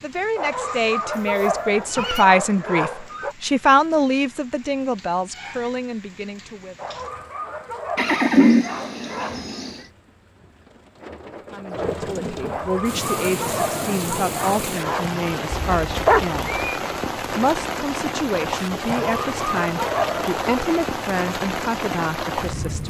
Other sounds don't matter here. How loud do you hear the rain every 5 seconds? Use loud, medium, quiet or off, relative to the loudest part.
quiet, quiet, loud, loud, loud.